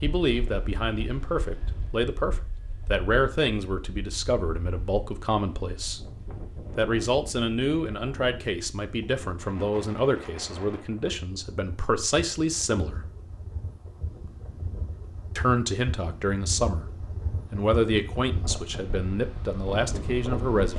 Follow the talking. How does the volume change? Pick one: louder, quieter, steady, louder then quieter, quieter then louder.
steady.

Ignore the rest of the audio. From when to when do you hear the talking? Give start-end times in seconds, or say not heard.
0.0-6.0, 6.8-13.1, 15.3-20.7.